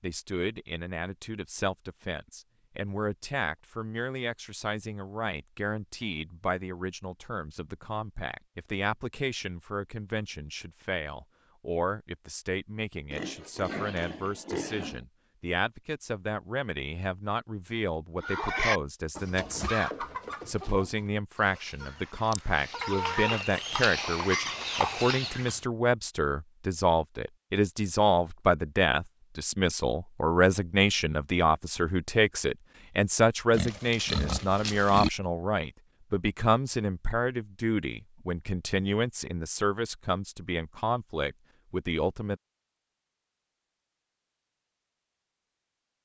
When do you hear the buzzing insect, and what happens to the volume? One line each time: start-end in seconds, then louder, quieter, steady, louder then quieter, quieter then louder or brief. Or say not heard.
not heard.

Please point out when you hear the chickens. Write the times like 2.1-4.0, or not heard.
18.2-25.6.